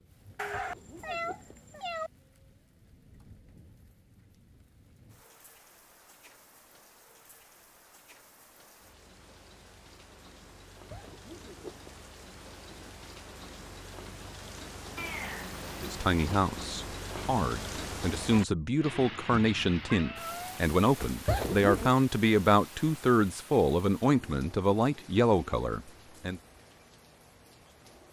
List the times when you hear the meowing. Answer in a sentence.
The meowing can be heard from 0.3 to 2.1 s, from 14.9 to 16.4 s and from 19.9 to 20.6 s.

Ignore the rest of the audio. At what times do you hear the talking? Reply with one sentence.
You can hear the talking from 15.8 to 26.4 s.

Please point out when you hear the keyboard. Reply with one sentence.
You can't hear the keyboard here.